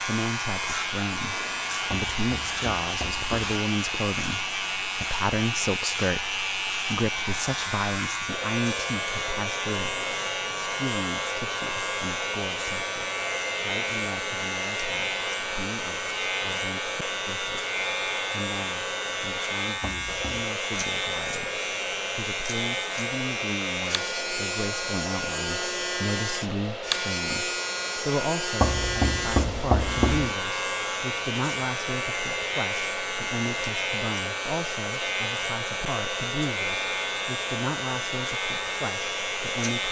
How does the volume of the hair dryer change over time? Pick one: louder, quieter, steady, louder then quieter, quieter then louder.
steady.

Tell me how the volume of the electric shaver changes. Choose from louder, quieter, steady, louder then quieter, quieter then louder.
steady.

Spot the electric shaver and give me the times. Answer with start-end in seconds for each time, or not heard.
0.0-39.8.